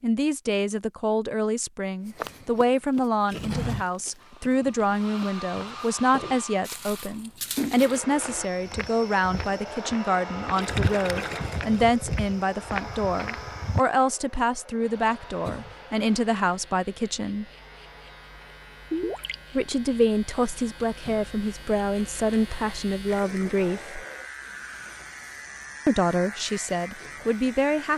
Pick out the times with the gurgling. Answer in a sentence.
You can hear the gurgling from 3.2 to 4.9 s, from 10.6 to 12.2 s, from 18.9 to 19.4 s and from 23.1 to 24.0 s.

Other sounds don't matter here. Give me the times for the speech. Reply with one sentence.
You can hear the speech from 0.0 to 17.4 s, from 19.6 to 23.9 s and from 25.9 to 27.9 s.